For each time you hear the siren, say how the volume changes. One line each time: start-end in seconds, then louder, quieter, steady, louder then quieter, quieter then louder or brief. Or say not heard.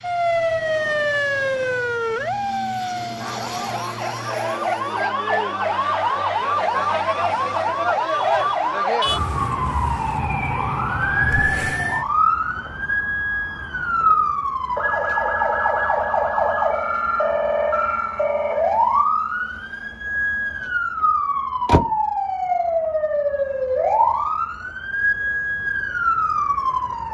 0.0-27.0 steady.